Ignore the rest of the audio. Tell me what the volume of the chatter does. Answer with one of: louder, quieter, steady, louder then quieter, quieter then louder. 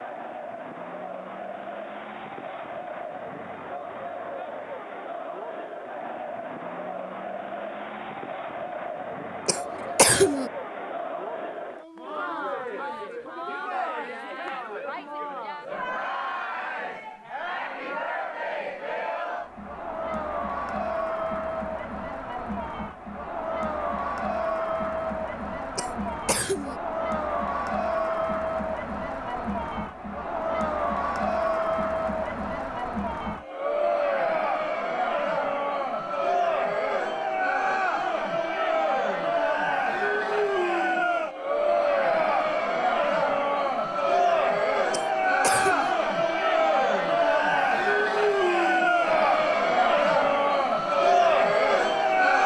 louder.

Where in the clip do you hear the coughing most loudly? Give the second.
10 s.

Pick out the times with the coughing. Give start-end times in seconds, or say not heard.
9.4-10.5, 25.8-26.8, 44.9-46.0.